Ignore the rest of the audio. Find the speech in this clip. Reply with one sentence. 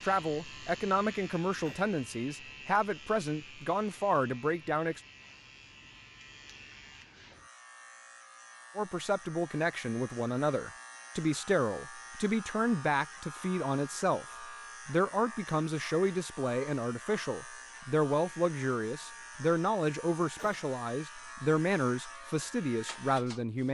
The speech can be heard from 0.0 to 5.0 s and from 8.8 to 23.6 s.